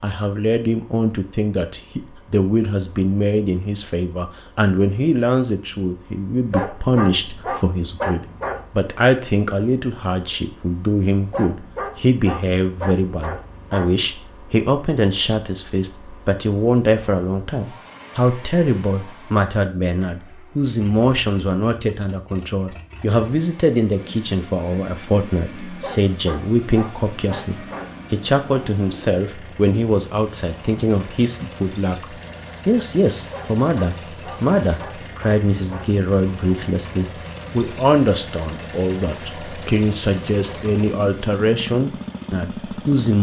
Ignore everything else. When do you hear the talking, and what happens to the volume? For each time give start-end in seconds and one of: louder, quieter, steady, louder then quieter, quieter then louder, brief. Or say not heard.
0.0-43.1 steady.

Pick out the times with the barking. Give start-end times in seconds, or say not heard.
6.5-8.7, 11.3-14.1, 25.8-28.1, 33.3-36.0.